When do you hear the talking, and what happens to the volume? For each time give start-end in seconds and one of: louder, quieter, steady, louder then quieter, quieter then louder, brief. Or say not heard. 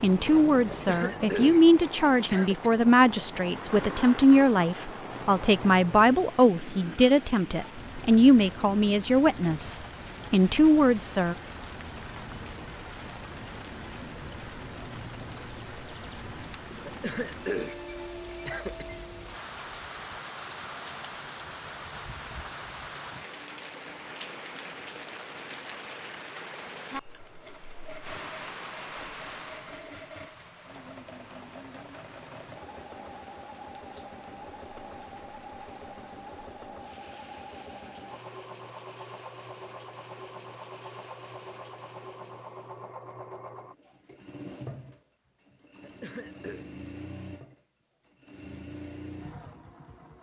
0.0-11.3 steady.